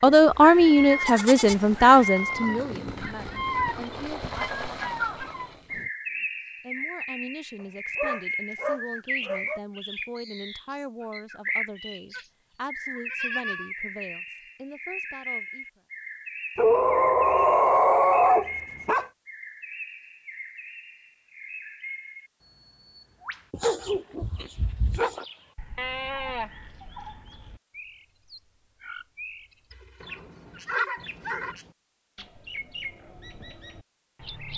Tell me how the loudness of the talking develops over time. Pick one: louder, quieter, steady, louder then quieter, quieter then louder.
quieter.